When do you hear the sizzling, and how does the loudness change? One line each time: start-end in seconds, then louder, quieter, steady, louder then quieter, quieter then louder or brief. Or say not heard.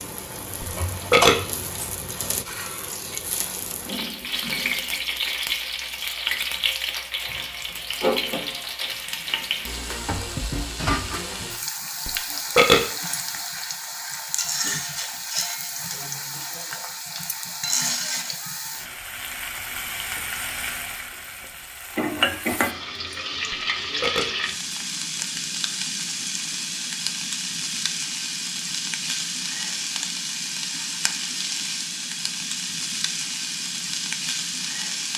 0.0-35.1 steady.